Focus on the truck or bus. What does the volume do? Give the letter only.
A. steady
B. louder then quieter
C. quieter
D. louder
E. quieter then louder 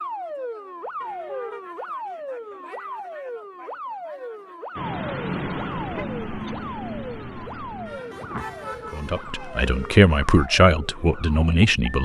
C.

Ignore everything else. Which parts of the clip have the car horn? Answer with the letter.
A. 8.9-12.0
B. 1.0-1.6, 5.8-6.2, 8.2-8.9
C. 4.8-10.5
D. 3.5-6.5
B.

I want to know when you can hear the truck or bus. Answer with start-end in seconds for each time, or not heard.
4.8-10.5.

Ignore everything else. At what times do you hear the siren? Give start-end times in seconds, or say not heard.
0.0-12.0.